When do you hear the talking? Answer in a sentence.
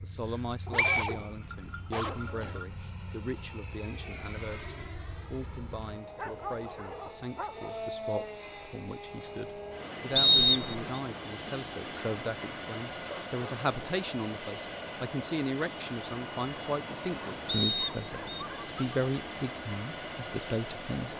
You can hear the talking from 0.0 to 21.1 s.